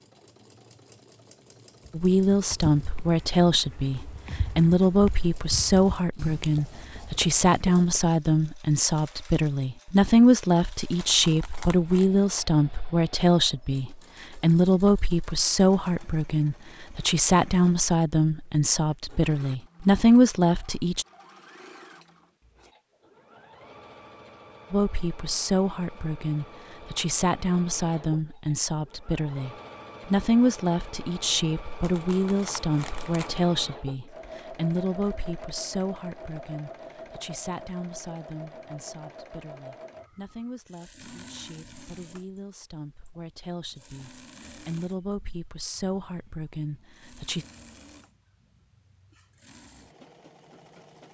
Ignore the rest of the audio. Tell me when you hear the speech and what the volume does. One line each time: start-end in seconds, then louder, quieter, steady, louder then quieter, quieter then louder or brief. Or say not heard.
1.9-21.1 steady
24.7-47.5 quieter then louder.